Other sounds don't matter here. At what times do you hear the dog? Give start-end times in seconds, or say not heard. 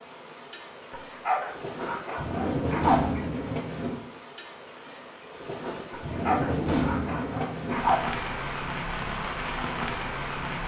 0.9-3.2, 5.9-8.2.